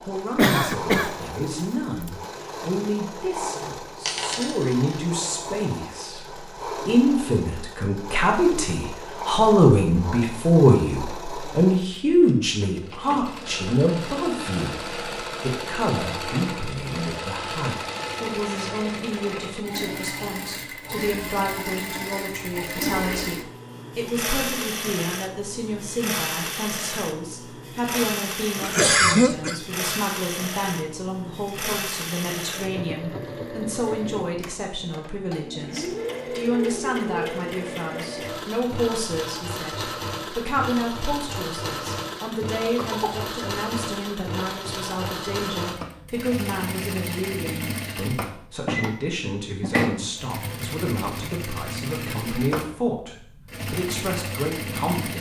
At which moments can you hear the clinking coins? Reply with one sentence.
The clinking coins can be heard from 4.0 to 5.0 s.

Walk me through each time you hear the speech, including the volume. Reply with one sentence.
The speech can be heard from 0.0 to 55.1 s, getting quieter.